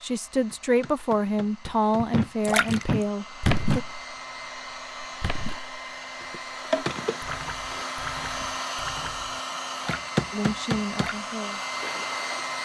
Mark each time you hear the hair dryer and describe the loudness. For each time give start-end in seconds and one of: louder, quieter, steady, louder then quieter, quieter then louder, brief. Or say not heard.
0.0-12.6 louder.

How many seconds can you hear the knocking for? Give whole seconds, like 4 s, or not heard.
2 s.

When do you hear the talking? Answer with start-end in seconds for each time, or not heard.
0.0-3.8, 10.3-11.6.